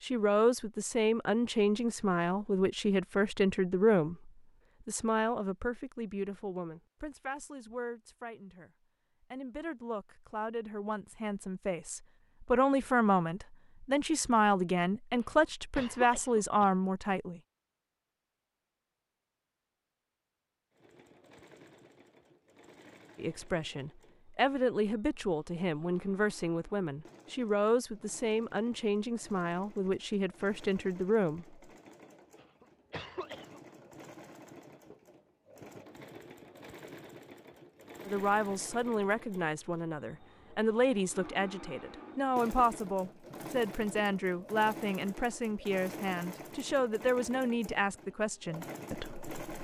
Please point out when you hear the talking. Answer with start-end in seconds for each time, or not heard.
0.0-17.4, 23.1-31.6, 38.0-49.2.